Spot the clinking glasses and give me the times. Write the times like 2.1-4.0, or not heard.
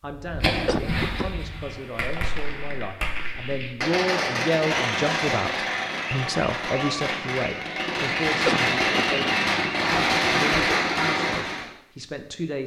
not heard.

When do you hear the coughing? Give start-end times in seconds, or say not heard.
0.7-1.3, 8.4-9.1.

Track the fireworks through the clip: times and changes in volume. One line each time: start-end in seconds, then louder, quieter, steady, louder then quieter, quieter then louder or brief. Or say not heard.
0.2-11.7 louder.